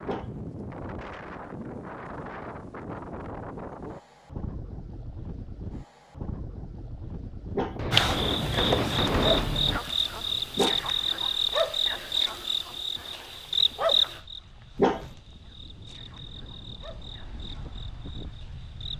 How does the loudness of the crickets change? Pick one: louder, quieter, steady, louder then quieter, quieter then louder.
quieter.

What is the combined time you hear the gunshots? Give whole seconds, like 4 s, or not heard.
2 s.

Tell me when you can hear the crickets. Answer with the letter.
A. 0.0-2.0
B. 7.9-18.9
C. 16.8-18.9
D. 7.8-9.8
B.